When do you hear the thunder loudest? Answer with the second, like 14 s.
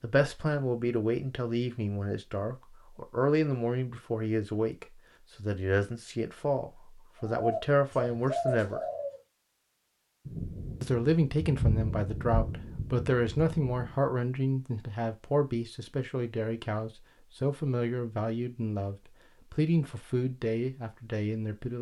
12 s.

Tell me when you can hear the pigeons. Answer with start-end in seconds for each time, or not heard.
7.2-9.2.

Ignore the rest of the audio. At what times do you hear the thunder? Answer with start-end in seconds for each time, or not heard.
10.2-13.9.